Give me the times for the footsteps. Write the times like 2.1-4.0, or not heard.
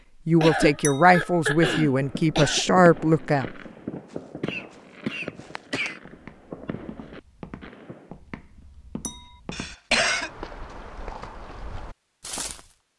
3.5-12.7.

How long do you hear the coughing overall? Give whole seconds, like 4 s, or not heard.
5 s.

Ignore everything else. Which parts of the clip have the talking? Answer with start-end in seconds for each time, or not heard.
0.2-3.5.